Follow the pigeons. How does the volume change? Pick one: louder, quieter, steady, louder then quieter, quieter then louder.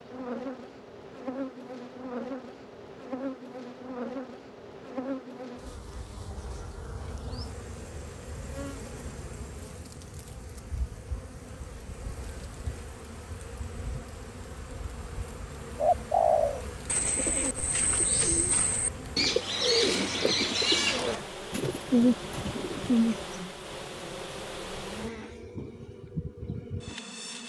quieter then louder.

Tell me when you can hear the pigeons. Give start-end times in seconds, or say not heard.
15.8-23.2.